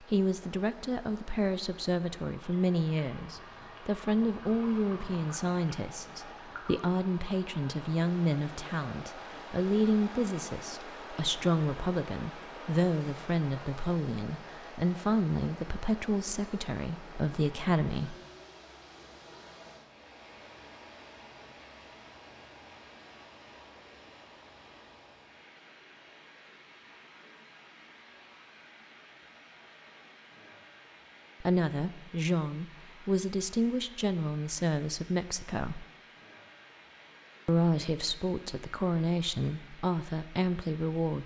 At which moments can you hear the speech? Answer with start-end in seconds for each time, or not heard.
0.0-18.1, 31.4-35.9, 37.5-41.2.